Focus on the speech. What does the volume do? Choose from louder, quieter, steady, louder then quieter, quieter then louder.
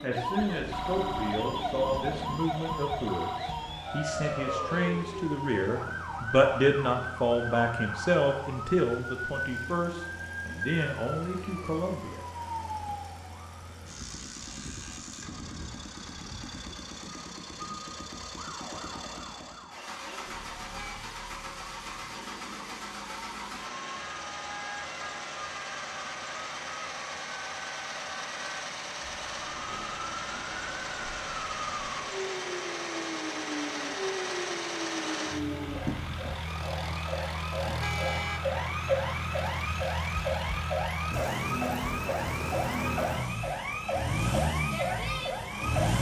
louder then quieter.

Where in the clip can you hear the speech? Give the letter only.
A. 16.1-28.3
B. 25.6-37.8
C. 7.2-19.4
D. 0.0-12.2
D.